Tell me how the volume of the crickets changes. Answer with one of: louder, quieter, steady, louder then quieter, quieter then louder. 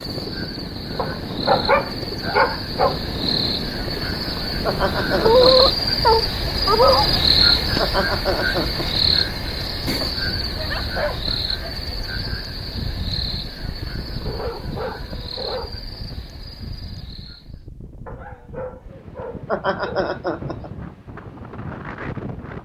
louder then quieter.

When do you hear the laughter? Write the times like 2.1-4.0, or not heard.
4.7-5.7, 7.8-8.8, 19.4-20.7.